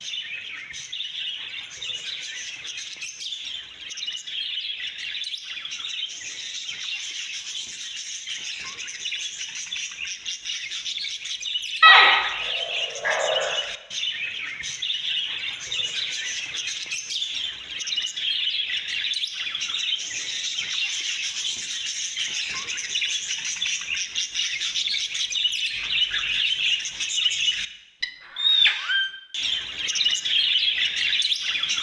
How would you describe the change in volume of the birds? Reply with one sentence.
The loudness of the birds goes up.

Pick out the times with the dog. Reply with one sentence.
You can hear the dog from 11.8 to 13.6 s.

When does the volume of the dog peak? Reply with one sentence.
The volume of the dog peaks at 12 seconds.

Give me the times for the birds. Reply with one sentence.
You can hear the birds from 0.0 to 31.7 s.